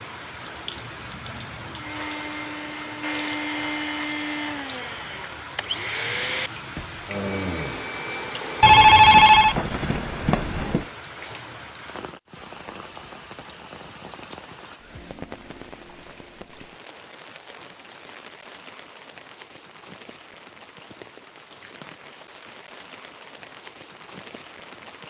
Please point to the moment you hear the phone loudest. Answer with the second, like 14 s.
9 s.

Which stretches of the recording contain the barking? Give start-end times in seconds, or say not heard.
not heard.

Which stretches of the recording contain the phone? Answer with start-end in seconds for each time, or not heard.
8.6-10.8.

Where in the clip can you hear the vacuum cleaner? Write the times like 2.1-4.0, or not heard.
1.8-9.2.